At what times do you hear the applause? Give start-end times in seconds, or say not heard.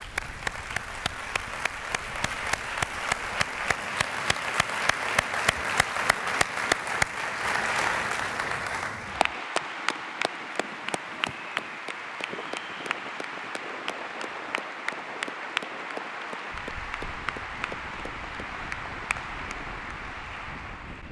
0.0-21.0.